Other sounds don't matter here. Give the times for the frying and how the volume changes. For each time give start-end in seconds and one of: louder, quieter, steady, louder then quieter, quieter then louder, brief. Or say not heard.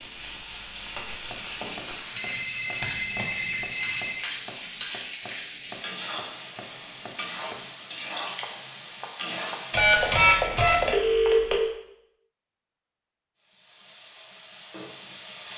0.0-10.3 steady
13.4-15.5 brief.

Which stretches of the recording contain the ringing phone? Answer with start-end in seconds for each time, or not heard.
2.1-4.2, 9.7-11.6.